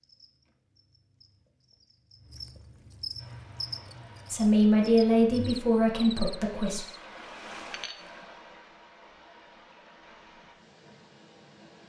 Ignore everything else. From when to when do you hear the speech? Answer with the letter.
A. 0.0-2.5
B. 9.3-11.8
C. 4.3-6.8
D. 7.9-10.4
C.